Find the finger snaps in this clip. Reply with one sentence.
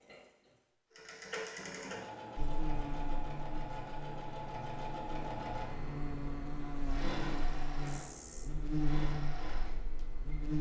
You can't hear the finger snaps here.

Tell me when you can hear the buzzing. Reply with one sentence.
The buzzing can be heard from 2.4 to 10.5 s.